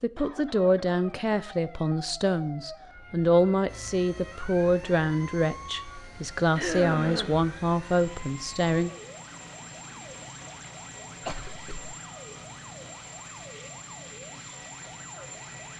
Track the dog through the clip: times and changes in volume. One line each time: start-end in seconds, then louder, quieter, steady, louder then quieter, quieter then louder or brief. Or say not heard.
not heard.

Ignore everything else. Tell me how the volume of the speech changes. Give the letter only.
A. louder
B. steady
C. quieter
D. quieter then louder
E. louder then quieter
B.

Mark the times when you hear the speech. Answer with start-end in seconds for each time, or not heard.
0.0-8.9.